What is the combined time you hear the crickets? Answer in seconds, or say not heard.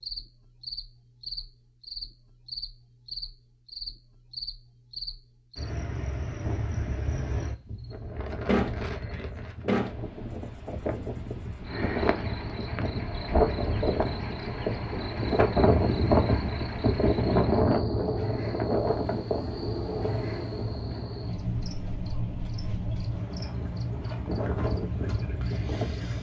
26 s.